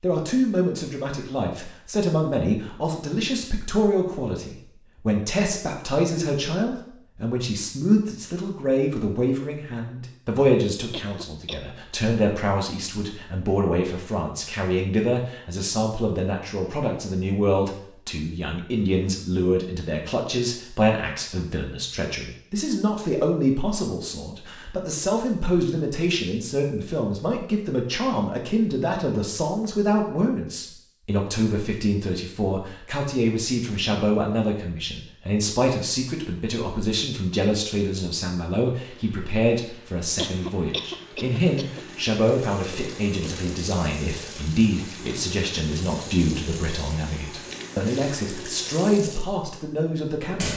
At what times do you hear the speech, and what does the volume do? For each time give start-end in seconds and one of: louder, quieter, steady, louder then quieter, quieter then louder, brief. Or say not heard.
0.0-50.5 steady.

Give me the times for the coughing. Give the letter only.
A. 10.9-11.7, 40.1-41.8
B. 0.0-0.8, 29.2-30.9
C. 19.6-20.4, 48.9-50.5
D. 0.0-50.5
A.